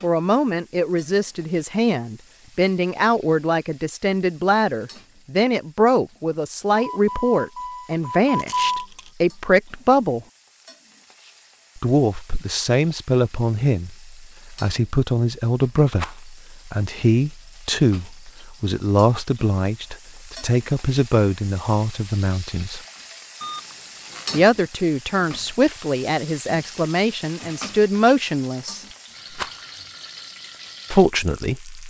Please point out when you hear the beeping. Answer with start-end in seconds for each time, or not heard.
6.8-8.8, 23.4-24.4.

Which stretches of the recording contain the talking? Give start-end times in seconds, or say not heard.
0.0-10.2, 11.8-22.8, 24.3-28.9, 30.9-31.8.